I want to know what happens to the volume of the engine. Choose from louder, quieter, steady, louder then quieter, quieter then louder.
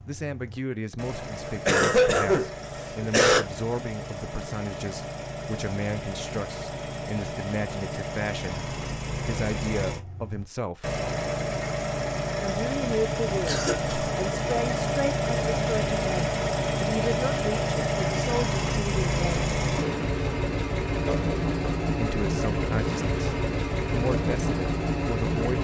louder.